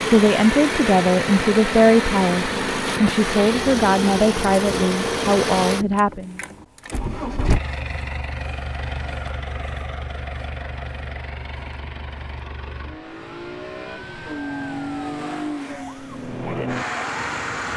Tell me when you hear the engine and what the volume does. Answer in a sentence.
You can hear the engine from 0.0 to 17.7 s, getting quieter then louder.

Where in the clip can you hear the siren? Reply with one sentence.
You can hear the siren from 13.0 to 17.6 s.